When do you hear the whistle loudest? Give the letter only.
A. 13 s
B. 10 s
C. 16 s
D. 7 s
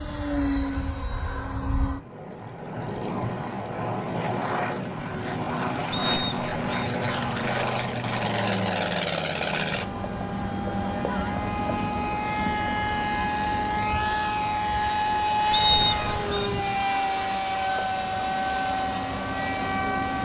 C.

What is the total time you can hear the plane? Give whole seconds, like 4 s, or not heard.
20 s.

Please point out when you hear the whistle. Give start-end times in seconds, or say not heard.
5.9-6.8, 15.5-16.5.